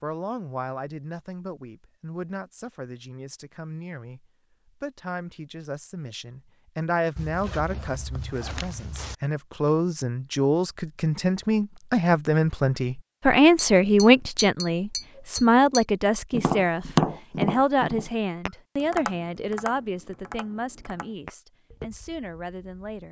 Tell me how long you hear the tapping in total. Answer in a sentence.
You can hear the tapping for 9 seconds altogether.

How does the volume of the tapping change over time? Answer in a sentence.
The loudness of the tapping goes up, then down.